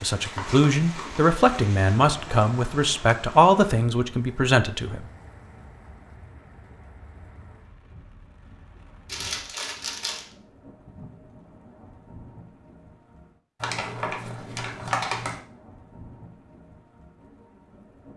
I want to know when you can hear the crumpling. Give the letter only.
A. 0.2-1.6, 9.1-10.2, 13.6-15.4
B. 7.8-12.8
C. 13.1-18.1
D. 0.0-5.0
A.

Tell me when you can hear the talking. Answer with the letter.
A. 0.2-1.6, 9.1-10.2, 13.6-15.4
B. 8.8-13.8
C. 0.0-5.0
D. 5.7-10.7
C.